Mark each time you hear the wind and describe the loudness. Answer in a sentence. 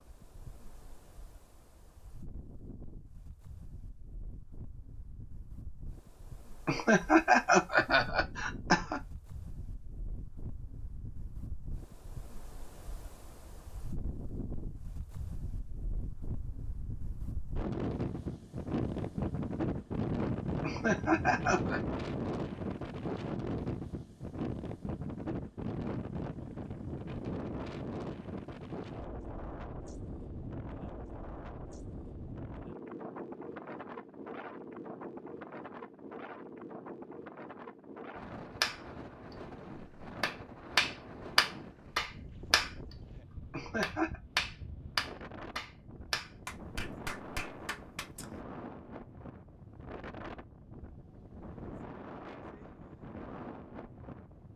The wind can be heard from 0.0 to 54.5 s, getting louder then quieter.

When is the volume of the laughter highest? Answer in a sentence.
The loudest moment of the laughter is at 7 seconds.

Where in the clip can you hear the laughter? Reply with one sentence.
You can hear the laughter from 6.7 to 9.0 s, from 20.6 to 21.8 s and from 43.5 to 44.2 s.